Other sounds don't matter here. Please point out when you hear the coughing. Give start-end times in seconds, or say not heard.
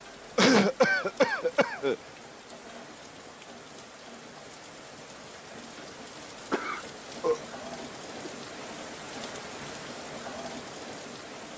0.3-1.9, 6.5-8.3.